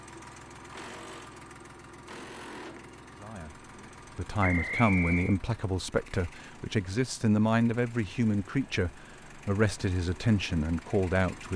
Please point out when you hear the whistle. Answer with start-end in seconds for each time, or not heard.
4.4-5.4.